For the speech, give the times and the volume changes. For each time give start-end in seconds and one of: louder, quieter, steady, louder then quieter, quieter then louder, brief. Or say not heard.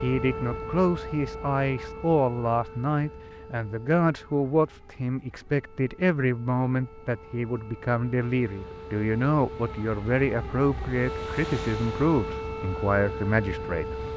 0.0-13.9 steady.